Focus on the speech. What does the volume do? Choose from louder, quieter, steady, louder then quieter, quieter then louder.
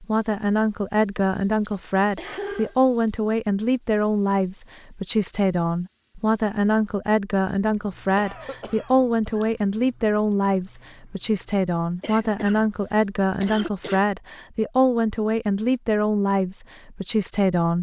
steady.